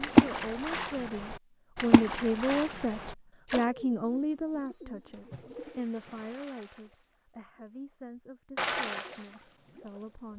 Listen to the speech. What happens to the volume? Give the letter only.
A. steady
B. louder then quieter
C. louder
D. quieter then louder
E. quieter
E.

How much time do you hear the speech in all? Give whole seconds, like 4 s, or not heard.
10 s.